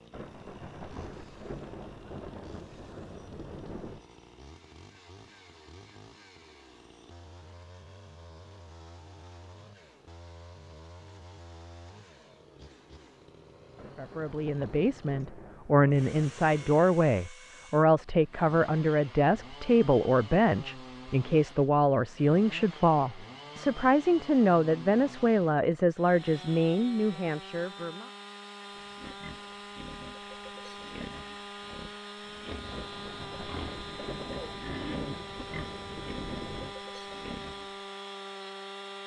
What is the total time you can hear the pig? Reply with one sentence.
The pig can be heard for 9 seconds in total.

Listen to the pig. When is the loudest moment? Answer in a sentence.
The volume of the pig peaks at 35 seconds.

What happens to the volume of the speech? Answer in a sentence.
The loudness of the speech stays about the same.